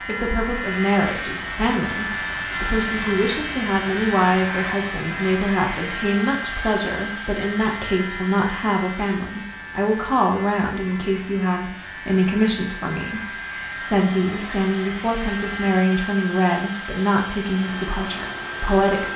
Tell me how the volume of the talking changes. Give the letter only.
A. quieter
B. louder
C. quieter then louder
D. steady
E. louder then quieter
D.